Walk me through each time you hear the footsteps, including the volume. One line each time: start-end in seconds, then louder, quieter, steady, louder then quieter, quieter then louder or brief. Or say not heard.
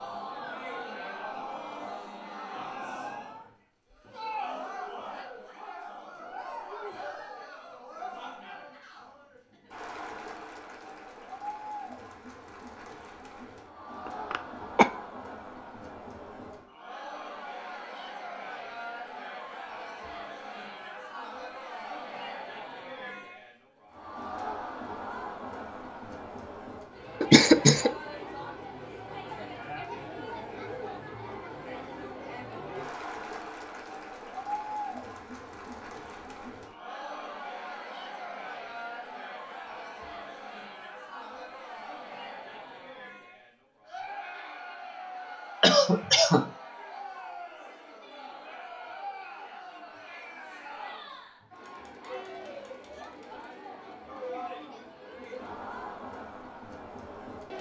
not heard.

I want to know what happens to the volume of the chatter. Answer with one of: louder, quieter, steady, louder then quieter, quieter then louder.
steady.